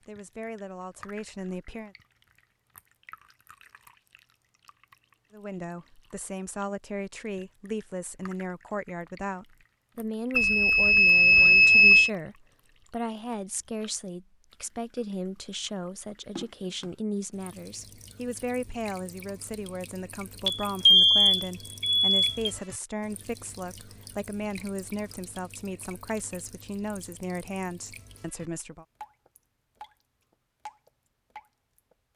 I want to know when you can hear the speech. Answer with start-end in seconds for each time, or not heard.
0.1-1.9, 5.3-28.9.